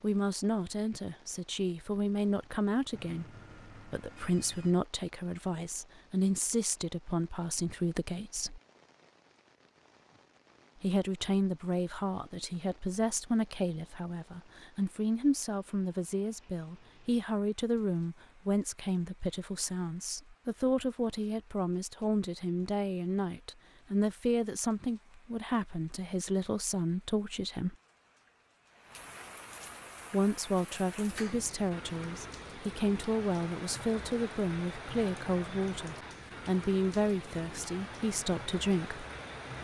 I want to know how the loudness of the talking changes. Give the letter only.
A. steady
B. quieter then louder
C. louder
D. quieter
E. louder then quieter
A.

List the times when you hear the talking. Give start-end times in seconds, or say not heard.
0.0-3.2, 3.9-8.6, 10.8-27.8, 30.1-39.0.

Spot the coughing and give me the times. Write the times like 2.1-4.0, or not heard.
not heard.